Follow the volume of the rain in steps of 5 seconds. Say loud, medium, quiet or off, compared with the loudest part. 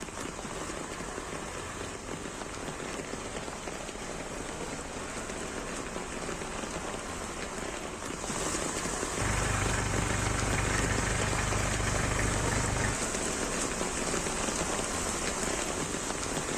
medium, loud, loud, loud.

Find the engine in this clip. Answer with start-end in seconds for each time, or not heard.
9.2-12.9.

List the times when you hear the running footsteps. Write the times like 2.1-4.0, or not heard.
not heard.